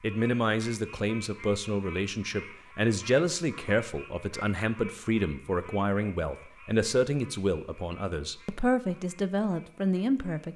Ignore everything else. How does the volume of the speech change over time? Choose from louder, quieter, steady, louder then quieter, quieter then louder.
steady.